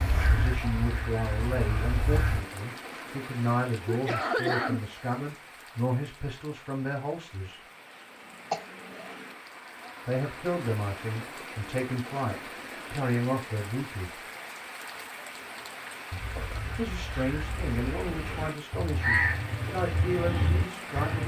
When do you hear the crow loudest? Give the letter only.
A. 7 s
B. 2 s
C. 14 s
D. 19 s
D.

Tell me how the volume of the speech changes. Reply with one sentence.
The volume of the speech stays about the same.